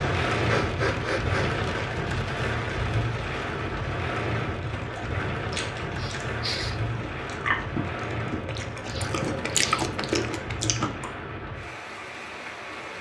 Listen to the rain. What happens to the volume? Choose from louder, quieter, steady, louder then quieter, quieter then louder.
quieter.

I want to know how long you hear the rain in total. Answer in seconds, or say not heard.
13 s.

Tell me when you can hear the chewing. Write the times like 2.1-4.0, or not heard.
4.8-11.1.